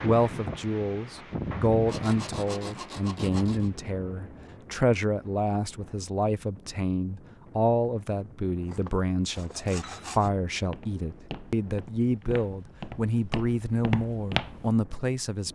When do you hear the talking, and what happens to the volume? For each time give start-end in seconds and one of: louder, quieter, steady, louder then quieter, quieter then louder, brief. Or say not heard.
0.0-15.5 steady.